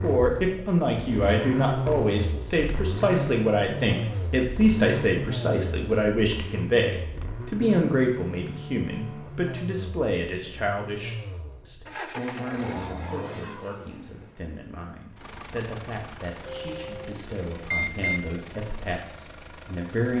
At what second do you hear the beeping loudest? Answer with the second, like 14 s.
18 s.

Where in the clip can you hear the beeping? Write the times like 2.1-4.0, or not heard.
16.4-18.2.